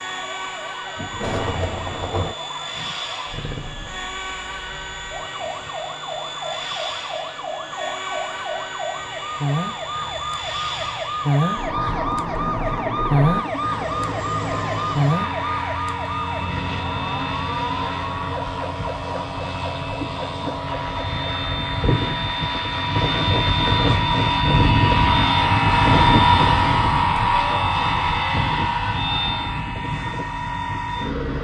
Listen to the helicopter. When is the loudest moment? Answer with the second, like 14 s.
26 s.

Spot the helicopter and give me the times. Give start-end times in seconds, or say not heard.
0.0-31.3.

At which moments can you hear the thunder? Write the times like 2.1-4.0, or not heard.
0.9-2.4, 26.2-28.2.